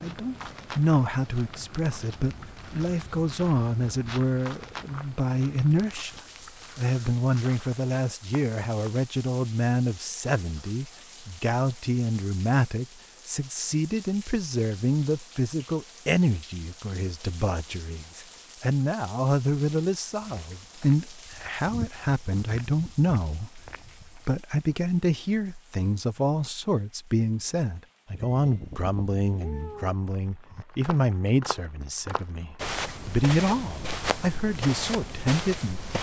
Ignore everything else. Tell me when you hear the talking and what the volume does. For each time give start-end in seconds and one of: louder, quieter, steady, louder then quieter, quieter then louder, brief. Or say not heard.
0.0-35.9 steady.